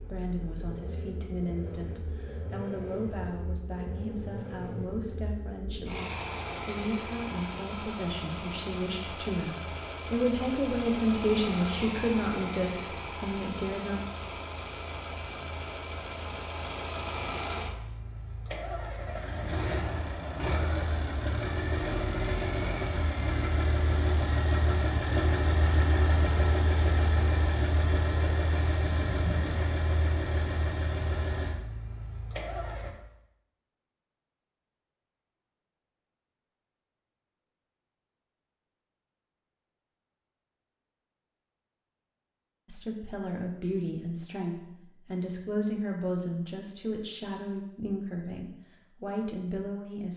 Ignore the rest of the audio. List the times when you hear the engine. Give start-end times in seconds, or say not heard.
0.0-32.9.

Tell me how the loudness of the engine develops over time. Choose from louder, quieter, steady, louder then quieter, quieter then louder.
louder.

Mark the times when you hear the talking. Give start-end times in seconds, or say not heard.
0.0-14.1, 42.6-50.1.